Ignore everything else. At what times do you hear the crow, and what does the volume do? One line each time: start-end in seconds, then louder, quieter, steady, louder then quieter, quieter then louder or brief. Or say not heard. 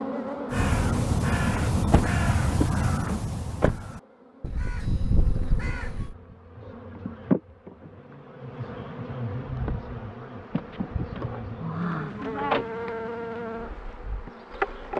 0.5-6.2 quieter then louder.